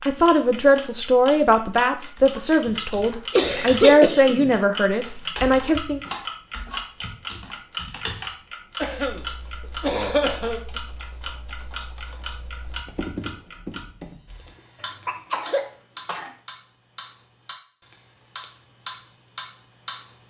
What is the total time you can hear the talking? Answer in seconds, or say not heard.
6 s.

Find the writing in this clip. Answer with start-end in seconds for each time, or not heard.
not heard.